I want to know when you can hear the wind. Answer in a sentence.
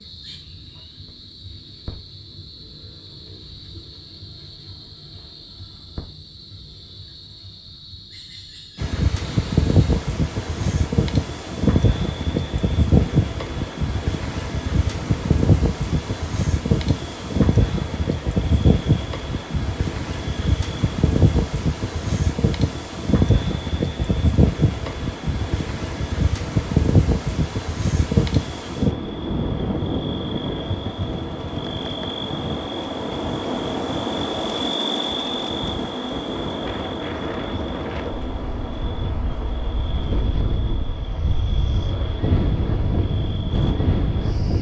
The wind can be heard from 8.8 to 44.5 s.